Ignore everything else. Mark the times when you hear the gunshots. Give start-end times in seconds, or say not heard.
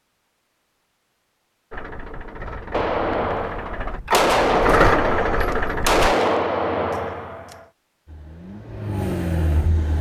2.7-7.7.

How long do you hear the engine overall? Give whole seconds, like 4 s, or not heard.
6 s.